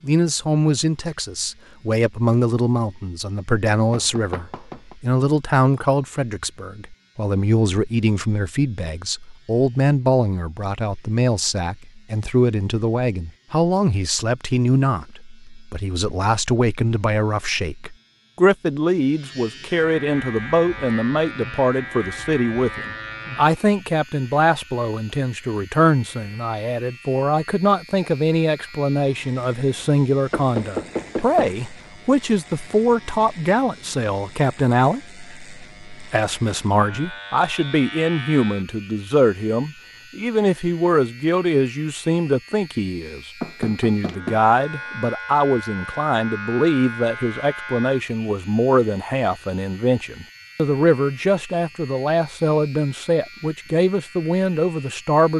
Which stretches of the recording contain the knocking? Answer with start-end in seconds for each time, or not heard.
3.9-5.0, 30.3-31.6, 43.4-44.4.